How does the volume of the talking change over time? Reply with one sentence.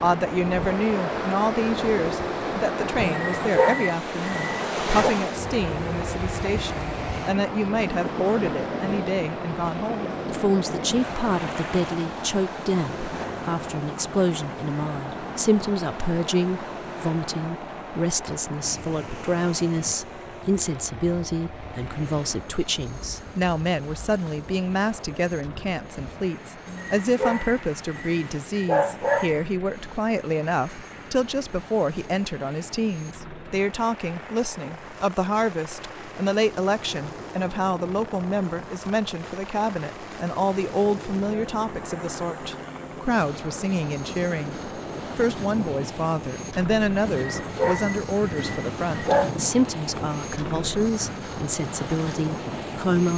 The loudness of the talking stays about the same.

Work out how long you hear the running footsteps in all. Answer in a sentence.
The running footsteps can't be heard in this clip.